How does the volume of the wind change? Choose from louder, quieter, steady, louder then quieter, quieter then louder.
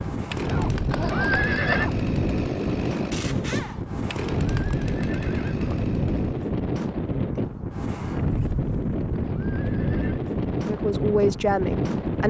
steady.